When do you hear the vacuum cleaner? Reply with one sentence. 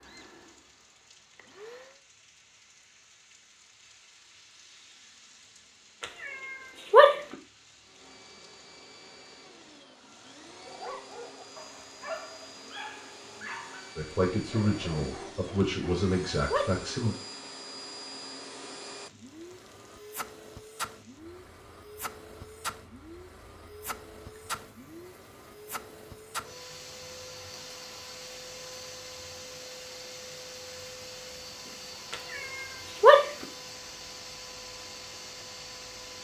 The vacuum cleaner can be heard from 0.0 to 2.0 s and from 7.8 to 36.1 s.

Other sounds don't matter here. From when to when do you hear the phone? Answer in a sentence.
You can't hear the phone here.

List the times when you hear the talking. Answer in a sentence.
The talking can be heard from 13.9 to 17.1 s.